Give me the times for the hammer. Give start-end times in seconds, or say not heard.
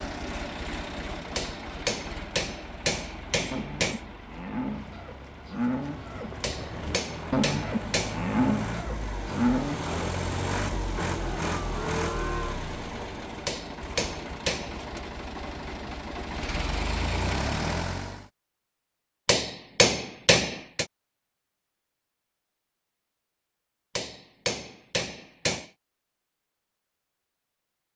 1.4-4.0, 6.4-8.2, 13.4-15.0, 19.2-20.9, 23.9-25.7.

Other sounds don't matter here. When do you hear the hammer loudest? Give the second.
20 s.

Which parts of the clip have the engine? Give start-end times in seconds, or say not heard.
0.0-18.3.